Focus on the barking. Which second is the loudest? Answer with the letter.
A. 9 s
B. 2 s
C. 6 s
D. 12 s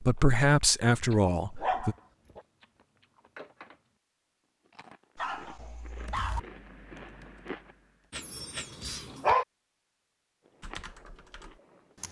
A.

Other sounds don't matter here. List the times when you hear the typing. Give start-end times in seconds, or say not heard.
6.0-8.2, 10.6-12.0.